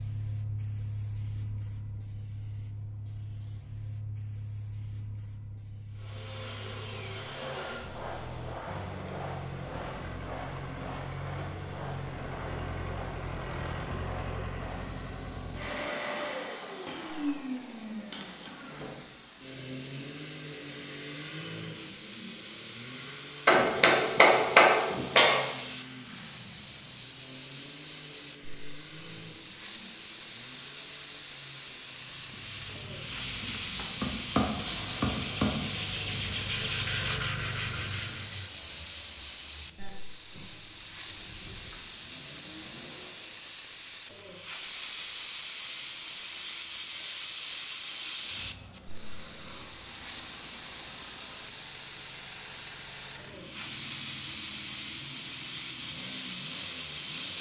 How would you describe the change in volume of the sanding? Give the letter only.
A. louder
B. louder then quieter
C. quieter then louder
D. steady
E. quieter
A.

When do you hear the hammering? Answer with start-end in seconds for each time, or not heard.
23.4-25.4, 34.0-35.6.